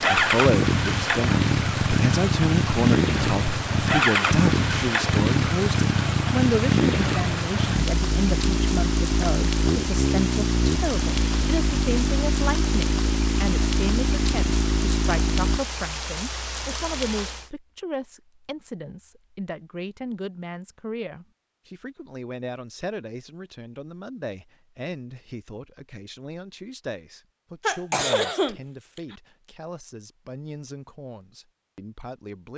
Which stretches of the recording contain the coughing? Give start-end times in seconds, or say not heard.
27.6-29.1.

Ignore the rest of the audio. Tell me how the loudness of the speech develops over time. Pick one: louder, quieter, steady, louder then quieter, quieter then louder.
quieter.